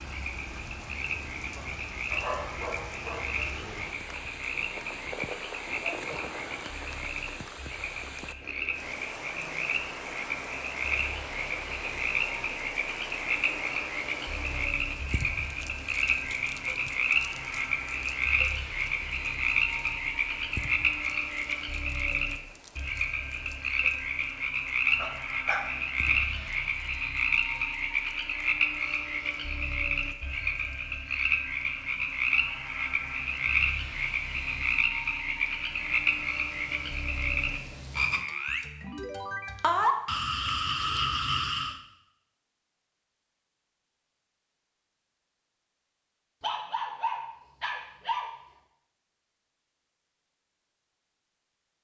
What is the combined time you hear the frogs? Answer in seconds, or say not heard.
42 s.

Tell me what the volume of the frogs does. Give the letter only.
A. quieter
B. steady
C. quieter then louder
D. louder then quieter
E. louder
E.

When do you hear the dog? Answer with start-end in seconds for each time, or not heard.
2.1-3.4, 24.9-26.4, 46.4-48.3.